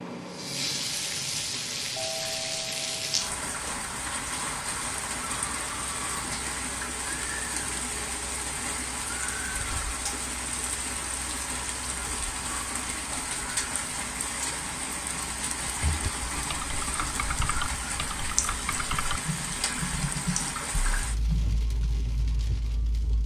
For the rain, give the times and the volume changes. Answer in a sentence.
You can hear the rain from 0.0 to 23.2 s, at a steady volume.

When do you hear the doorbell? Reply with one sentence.
The doorbell can be heard from 1.9 to 3.3 s.